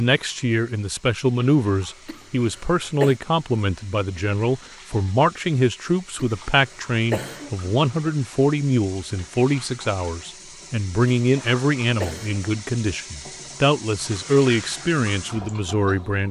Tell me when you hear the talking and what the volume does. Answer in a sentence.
The talking can be heard from 0.0 to 16.2 s, at a steady volume.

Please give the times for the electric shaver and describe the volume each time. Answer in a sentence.
You can't hear the electric shaver here.